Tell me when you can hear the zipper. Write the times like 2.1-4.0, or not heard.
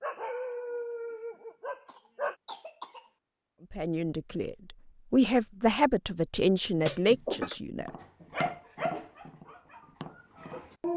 not heard.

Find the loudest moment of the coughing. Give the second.
7 s.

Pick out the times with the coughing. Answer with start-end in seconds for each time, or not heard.
1.9-3.1, 6.8-7.6.